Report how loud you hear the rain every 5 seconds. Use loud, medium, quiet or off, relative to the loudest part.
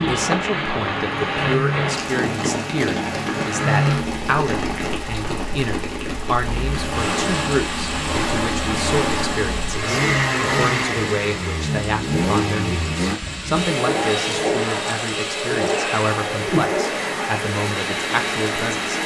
loud, medium, medium, loud.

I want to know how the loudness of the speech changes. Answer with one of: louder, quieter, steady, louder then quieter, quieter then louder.
steady.